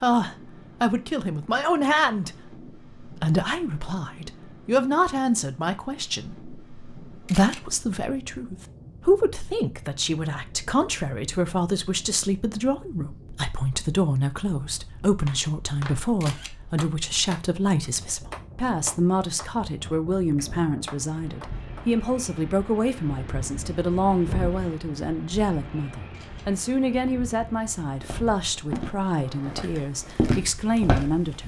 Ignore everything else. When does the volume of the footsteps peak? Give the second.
30 s.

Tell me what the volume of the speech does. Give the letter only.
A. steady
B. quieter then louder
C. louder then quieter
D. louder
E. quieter
A.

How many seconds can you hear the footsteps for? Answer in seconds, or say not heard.
3 s.